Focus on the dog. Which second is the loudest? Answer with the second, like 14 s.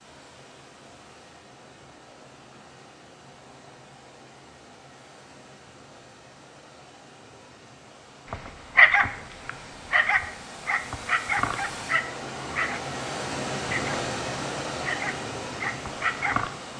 9 s.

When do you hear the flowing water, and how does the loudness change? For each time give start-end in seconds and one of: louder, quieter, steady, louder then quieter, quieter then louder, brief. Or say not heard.
0.0-16.7 louder.